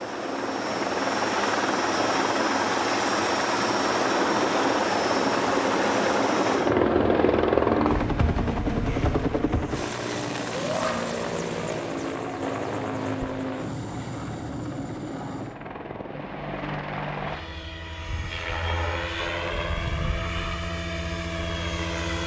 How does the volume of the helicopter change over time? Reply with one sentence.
The loudness of the helicopter goes down.